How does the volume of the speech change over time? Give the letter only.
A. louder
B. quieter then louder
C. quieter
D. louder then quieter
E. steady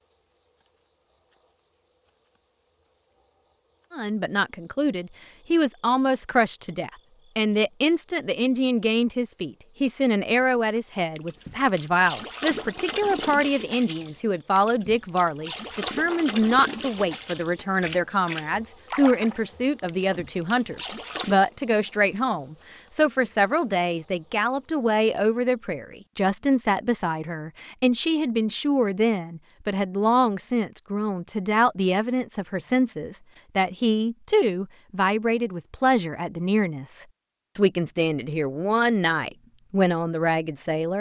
E.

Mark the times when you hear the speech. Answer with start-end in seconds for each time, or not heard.
3.9-40.9.